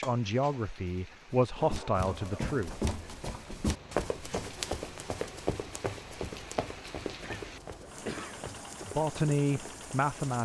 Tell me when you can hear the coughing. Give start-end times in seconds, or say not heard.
7.2-8.4.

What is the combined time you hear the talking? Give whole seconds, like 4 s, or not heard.
4 s.